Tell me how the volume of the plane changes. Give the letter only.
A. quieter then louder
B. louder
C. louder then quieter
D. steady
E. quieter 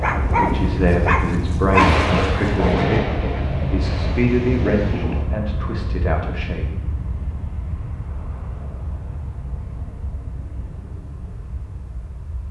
E.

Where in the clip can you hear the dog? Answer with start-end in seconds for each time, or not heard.
0.0-2.5.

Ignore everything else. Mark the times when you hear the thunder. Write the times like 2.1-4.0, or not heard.
1.8-5.2.